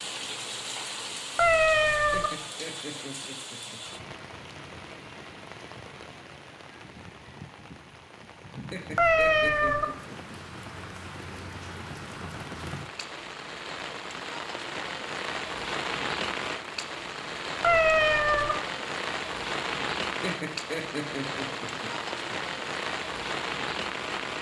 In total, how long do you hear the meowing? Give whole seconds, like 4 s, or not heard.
3 s.